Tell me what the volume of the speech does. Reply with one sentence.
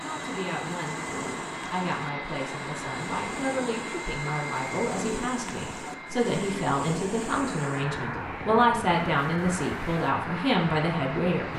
The loudness of the speech goes up.